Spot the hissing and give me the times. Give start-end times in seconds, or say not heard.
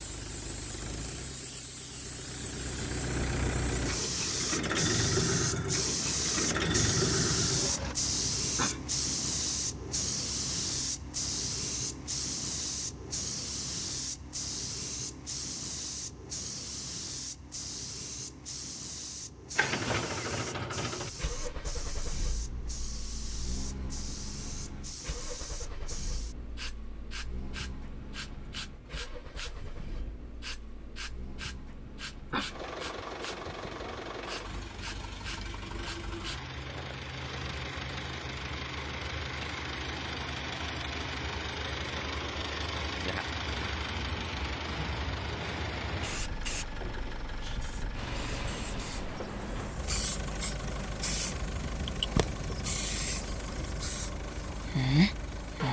0.0-36.5, 46.0-55.6.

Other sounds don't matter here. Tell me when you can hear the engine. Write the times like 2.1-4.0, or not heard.
0.0-8.0, 19.6-55.6.